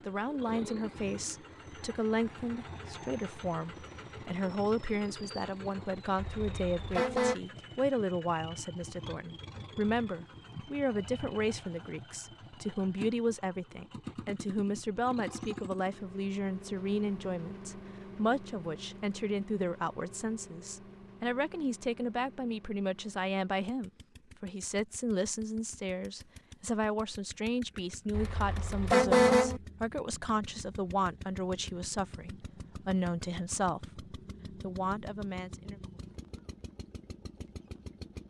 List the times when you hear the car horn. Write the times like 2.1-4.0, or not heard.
6.2-7.3, 28.1-29.6.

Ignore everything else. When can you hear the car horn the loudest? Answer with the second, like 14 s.
29 s.